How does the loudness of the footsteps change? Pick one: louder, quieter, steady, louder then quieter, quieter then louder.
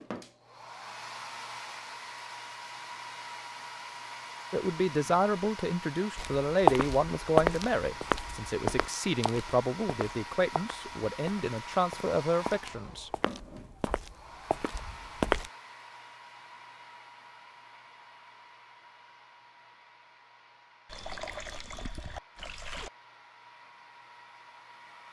quieter then louder.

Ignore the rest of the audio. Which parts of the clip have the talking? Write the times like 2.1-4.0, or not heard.
4.5-13.1.